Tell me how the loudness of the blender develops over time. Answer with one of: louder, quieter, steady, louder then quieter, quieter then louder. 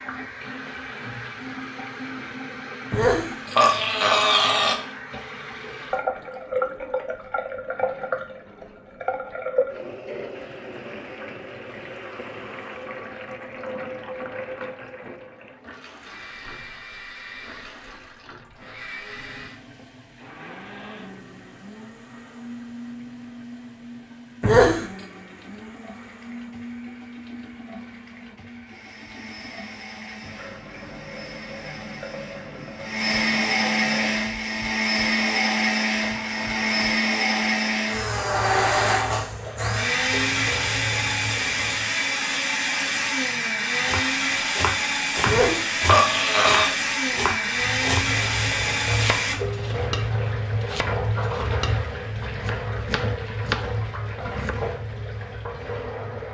louder.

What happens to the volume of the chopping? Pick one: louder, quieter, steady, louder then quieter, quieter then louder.
quieter then louder.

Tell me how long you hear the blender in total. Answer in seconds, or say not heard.
33 s.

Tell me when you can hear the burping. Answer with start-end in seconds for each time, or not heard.
2.9-4.8, 24.4-25.1, 45.2-46.7.